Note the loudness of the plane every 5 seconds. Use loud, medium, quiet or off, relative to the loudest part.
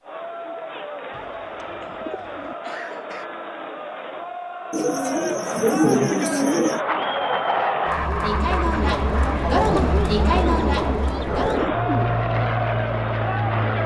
off, loud, loud.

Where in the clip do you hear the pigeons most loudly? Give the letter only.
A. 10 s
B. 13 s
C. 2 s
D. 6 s
D.